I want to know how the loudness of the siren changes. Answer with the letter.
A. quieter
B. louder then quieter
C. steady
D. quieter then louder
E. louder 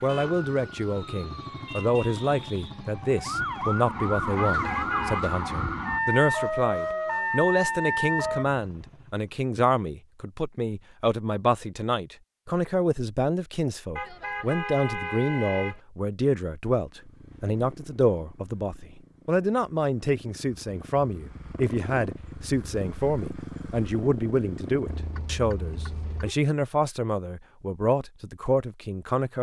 E.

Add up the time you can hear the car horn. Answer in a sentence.
The car horn can be heard for 4 seconds in total.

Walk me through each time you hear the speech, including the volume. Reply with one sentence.
You can hear the speech from 0.0 to 29.3 s, at a steady volume.